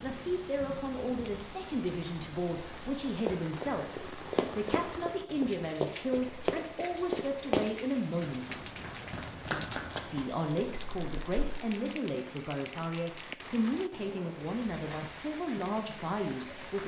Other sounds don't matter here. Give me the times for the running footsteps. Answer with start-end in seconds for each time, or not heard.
3.2-11.6.